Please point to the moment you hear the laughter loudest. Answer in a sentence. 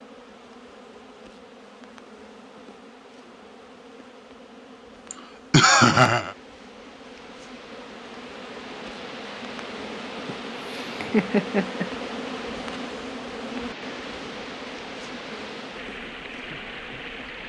The volume of the laughter peaks at 6 seconds.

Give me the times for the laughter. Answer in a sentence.
The laughter can be heard from 5.1 to 6.3 s and from 10.2 to 11.9 s.